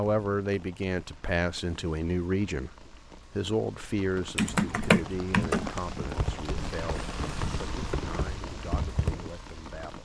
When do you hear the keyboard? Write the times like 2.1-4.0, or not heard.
4.3-9.3.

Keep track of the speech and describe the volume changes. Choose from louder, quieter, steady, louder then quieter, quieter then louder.
quieter.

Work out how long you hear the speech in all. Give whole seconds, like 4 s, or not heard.
10 s.